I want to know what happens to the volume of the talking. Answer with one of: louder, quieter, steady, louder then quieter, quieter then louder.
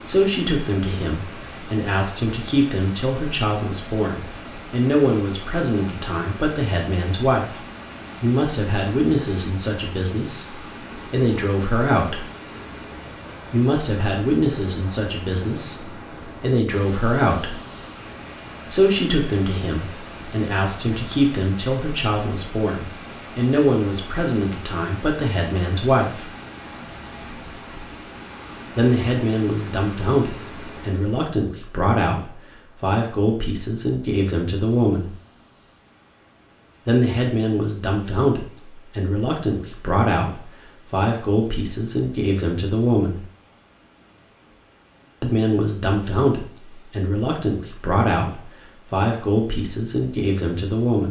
steady.